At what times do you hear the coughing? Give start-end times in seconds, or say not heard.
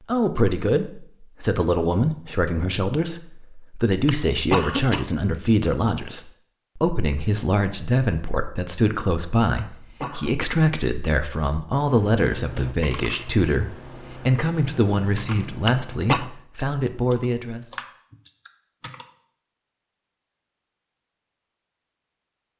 4.0-5.0, 9.6-10.4, 15.7-16.2.